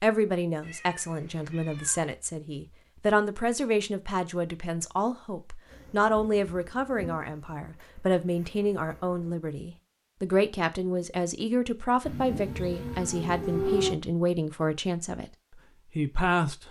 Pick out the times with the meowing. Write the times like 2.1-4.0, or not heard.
0.6-2.1, 12.0-13.9.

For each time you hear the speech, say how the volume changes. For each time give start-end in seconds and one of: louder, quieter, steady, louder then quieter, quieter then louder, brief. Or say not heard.
0.0-15.2 steady
15.9-16.6 brief.